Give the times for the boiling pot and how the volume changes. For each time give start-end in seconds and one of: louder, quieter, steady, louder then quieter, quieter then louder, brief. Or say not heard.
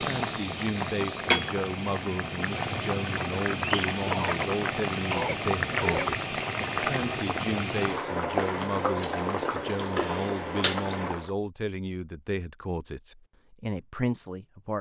0.0-11.3 steady.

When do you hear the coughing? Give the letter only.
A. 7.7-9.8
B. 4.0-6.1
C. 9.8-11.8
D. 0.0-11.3
B.